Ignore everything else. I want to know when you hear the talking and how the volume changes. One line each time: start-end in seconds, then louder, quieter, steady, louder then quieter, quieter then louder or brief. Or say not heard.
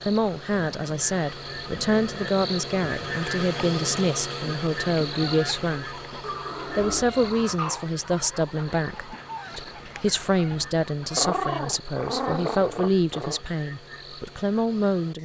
0.0-6.0 steady
6.7-15.1 steady.